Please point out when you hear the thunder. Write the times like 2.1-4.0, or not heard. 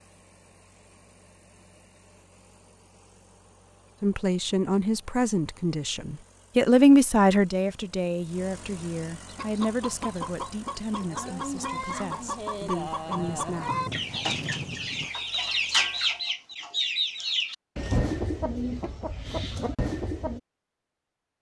13.1-15.1.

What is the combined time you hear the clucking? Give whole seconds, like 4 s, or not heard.
11 s.